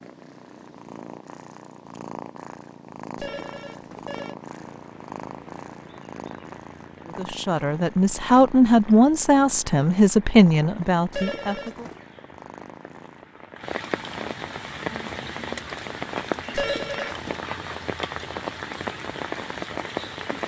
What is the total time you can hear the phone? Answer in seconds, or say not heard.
3 s.